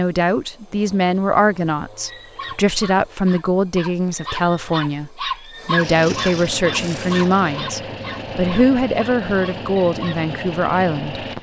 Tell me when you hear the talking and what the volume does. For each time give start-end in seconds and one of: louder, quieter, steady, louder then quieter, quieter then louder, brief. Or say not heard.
0.0-11.2 steady.